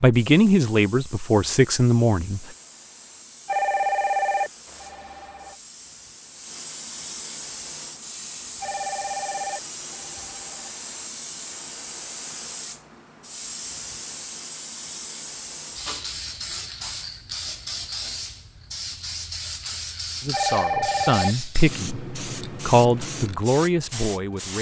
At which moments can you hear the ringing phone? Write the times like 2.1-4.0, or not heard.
3.5-5.5, 8.6-10.7, 20.3-21.4.